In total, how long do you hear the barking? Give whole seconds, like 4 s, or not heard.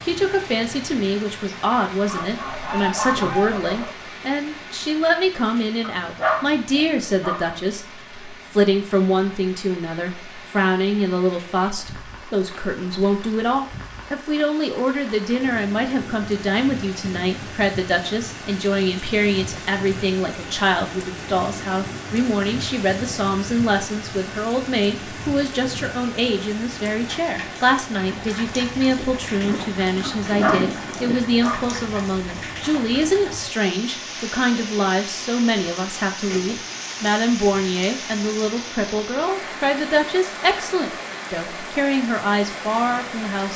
3 s.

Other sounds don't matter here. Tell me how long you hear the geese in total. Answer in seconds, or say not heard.
4 s.